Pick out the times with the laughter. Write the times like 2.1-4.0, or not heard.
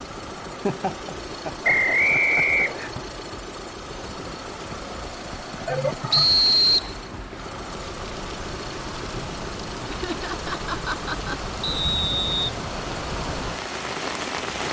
0.5-3.0, 5.7-6.3, 9.8-11.4.